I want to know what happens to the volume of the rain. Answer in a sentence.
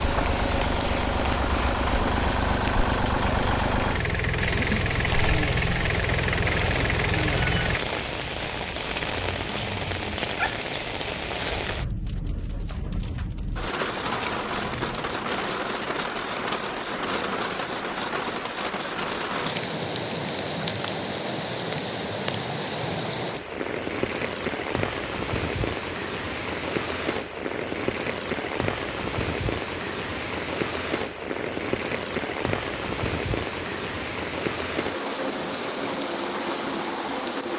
The loudness of the rain stays about the same.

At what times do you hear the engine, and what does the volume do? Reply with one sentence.
You can hear the engine from 0.0 to 7.8 s, at a steady volume.